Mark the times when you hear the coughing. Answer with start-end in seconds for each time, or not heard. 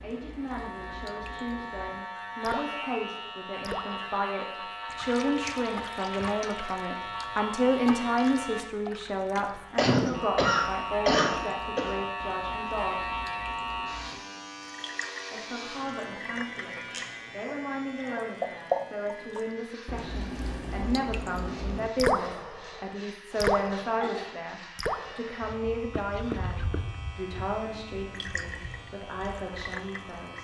9.3-11.9, 23.3-24.2.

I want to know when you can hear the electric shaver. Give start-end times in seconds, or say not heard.
0.0-30.4.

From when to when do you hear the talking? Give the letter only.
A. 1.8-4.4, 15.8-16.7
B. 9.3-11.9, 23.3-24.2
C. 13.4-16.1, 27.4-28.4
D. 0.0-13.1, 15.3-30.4
D.